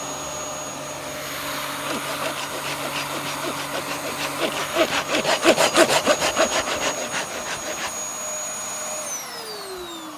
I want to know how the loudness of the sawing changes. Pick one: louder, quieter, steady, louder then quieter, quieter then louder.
louder then quieter.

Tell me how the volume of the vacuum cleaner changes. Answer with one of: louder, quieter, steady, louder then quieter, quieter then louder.
steady.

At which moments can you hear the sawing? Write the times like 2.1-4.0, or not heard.
1.7-8.0.